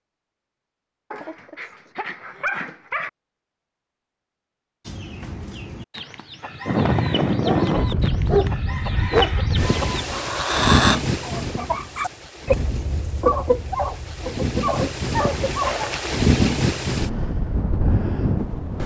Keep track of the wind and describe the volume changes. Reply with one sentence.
The loudness of the wind goes down, then up.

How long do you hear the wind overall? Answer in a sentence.
You can hear the wind for 12 seconds altogether.